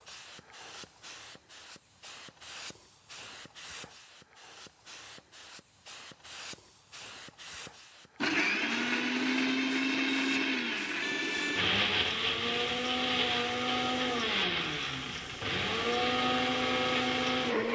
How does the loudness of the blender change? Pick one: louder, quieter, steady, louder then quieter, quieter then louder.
steady.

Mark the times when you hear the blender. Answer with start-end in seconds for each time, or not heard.
8.2-17.7.